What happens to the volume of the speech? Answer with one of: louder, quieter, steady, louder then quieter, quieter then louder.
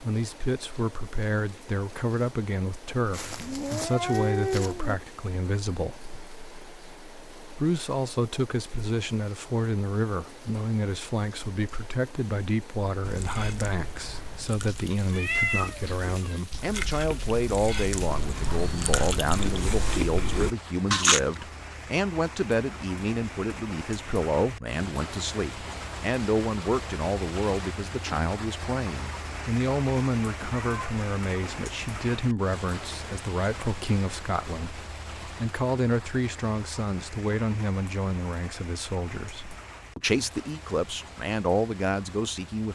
steady.